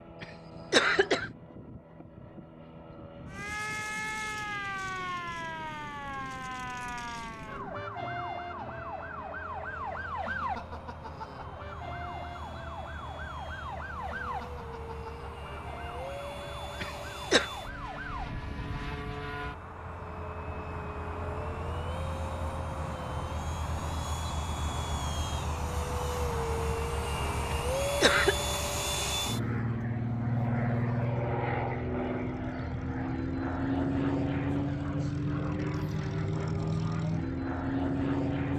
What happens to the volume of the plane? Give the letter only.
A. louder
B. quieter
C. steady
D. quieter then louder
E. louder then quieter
A.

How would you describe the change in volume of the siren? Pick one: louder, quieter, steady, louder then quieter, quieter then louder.
quieter.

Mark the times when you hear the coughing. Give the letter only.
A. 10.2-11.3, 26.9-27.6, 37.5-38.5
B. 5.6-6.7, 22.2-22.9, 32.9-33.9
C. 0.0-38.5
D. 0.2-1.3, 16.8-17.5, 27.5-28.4
D.